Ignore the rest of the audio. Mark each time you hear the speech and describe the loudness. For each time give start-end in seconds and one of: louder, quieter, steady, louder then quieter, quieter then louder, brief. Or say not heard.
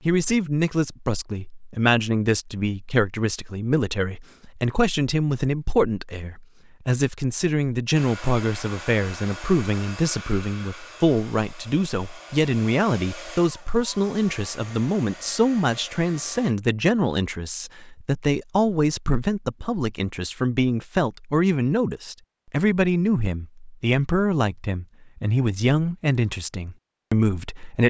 0.1-27.8 steady.